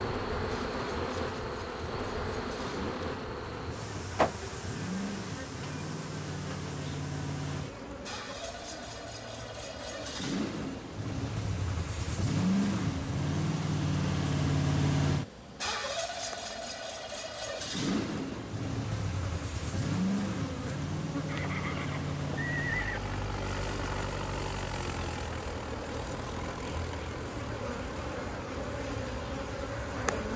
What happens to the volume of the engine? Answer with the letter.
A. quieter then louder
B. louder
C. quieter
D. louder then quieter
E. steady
D.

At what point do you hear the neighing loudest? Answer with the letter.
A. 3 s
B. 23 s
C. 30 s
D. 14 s
B.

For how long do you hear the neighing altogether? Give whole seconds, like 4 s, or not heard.
2 s.